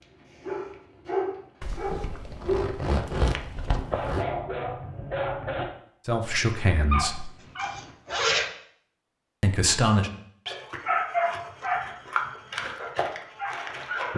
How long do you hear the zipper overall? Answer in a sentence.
The zipper can be heard for 4 seconds in total.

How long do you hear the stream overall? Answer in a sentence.
The stream can't be heard in this clip.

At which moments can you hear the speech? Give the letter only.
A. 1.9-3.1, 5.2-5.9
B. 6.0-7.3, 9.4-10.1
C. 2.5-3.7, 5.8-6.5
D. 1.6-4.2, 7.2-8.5
B.